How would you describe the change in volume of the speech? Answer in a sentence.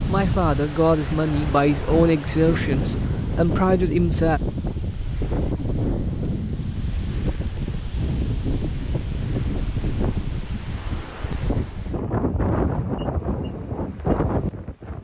The loudness of the speech goes down, then up.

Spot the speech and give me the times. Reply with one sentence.
The speech can be heard from 0.1 to 4.4 s.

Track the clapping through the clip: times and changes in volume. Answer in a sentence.
The clapping can't be heard in this clip.